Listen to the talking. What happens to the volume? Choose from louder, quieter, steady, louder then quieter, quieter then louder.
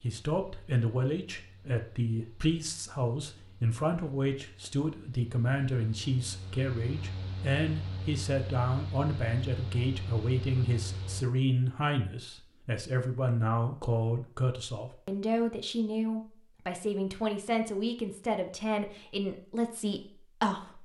steady.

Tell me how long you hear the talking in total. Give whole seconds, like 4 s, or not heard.
21 s.